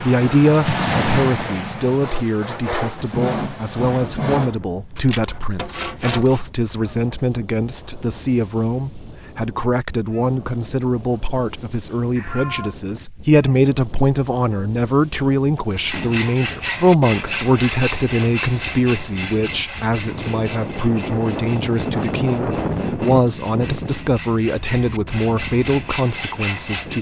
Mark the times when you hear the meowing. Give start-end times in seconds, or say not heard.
12.2-12.8.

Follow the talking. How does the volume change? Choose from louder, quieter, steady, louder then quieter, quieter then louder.
steady.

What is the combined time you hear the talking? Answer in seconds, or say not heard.
27 s.